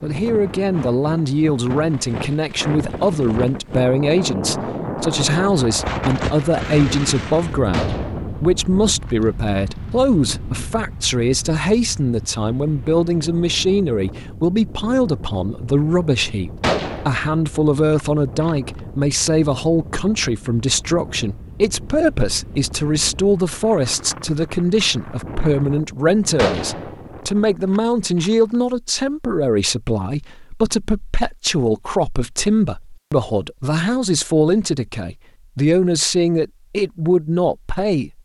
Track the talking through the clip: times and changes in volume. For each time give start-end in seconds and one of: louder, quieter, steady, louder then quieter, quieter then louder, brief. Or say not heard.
0.0-38.1 steady.